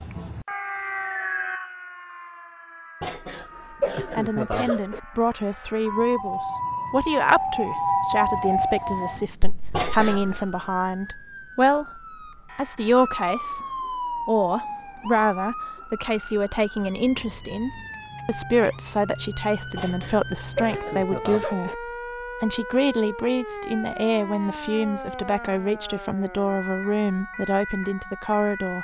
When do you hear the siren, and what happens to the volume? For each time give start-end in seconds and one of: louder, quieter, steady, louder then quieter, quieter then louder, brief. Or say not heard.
0.0-28.7 louder then quieter.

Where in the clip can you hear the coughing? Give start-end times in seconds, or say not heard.
3.0-5.0, 9.7-10.4, 19.8-21.8.